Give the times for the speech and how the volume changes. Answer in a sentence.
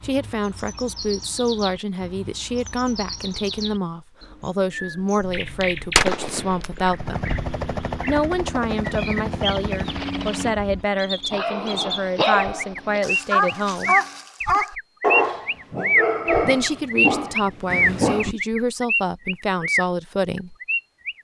You can hear the speech from 0.0 to 7.3 s, at a steady volume; from 8.1 to 13.9 s, at a steady volume; and from 16.4 to 20.6 s, at a steady volume.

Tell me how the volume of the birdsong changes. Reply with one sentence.
The volume of the birdsong goes up.